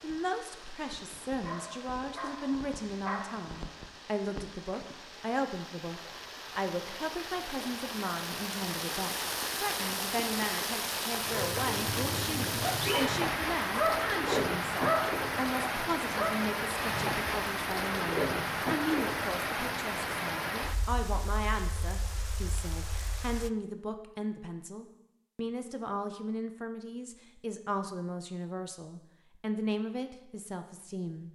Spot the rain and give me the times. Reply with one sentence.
The rain can be heard from 0.0 to 23.5 s.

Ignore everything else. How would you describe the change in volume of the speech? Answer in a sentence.
The volume of the speech stays about the same.